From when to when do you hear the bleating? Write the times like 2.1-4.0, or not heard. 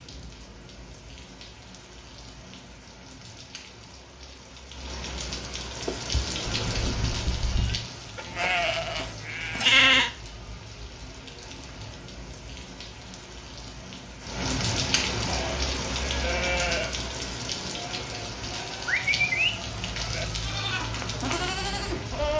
5.8-10.1, 15.2-22.3.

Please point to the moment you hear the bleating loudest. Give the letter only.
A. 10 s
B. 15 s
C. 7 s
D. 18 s
A.